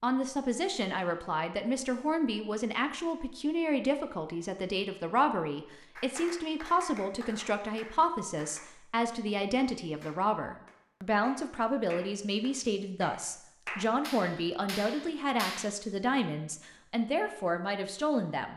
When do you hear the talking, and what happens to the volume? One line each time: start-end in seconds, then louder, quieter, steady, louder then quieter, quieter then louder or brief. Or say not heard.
0.0-18.5 steady.